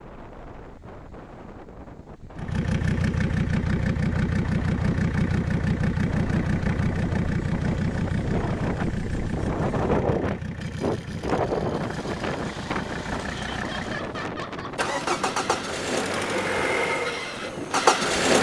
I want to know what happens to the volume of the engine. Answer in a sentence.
The volume of the engine goes down, then up.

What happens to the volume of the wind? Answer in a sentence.
The volume of the wind goes up, then down.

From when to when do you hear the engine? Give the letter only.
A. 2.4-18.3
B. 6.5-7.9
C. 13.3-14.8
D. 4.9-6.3
A.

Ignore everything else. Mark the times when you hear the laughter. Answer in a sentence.
The laughter can be heard from 13.3 to 14.8 s.